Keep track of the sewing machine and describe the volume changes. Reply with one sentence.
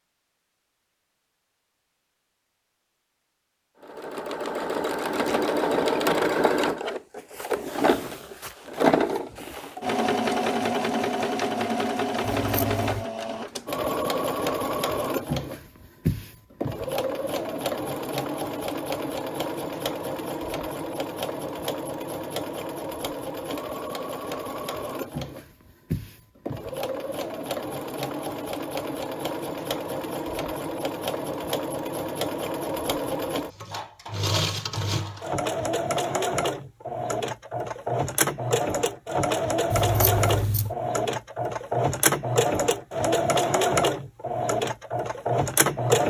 The volume of the sewing machine goes down, then up.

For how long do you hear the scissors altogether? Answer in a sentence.
The scissors can be heard for 2 seconds in total.